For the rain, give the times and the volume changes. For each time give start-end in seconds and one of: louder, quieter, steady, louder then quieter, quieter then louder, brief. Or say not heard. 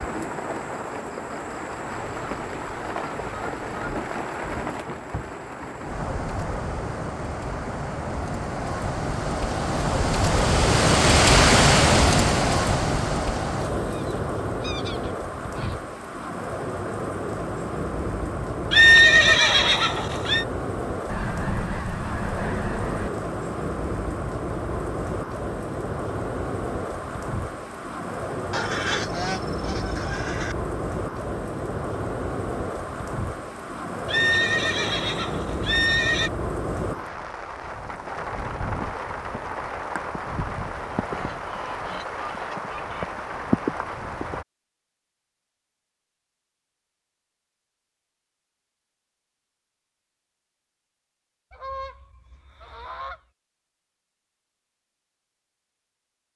0.0-44.5 louder then quieter.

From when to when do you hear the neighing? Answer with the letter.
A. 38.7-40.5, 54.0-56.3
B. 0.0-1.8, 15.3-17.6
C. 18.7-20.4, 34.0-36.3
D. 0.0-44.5
C.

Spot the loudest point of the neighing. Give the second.
19 s.